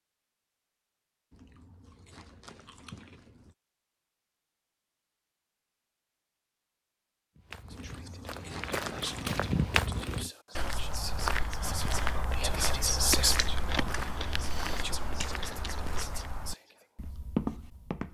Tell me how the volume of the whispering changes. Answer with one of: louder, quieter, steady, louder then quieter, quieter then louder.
louder then quieter.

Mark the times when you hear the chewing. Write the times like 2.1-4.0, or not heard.
1.3-3.5, 7.7-10.3, 13.3-16.0.